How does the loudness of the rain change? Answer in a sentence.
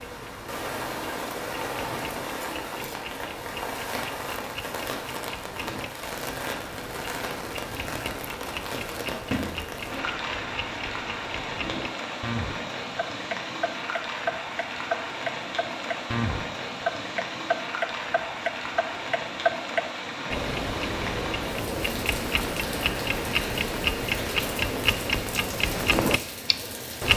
The volume of the rain stays about the same.